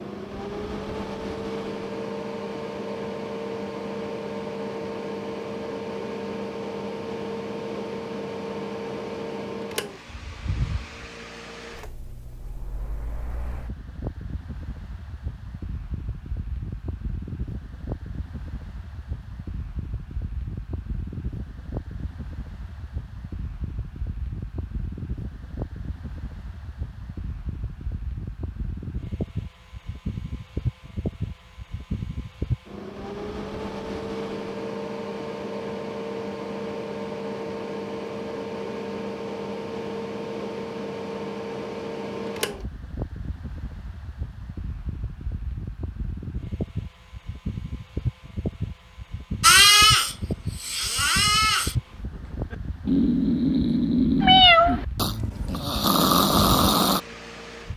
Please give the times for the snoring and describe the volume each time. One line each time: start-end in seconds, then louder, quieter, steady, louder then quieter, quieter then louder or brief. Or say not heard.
49.4-57.0 steady.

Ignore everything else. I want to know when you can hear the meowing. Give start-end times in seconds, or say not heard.
54.2-54.9.